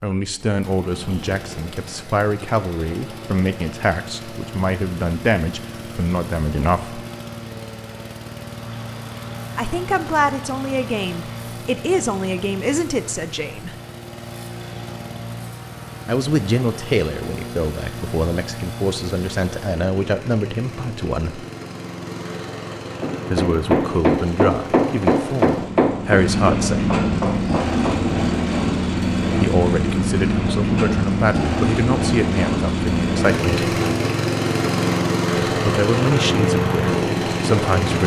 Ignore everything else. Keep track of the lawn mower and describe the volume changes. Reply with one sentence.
The loudness of the lawn mower goes up.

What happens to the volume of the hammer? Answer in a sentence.
The loudness of the hammer goes down.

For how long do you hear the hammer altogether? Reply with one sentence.
You can hear the hammer for 5 seconds altogether.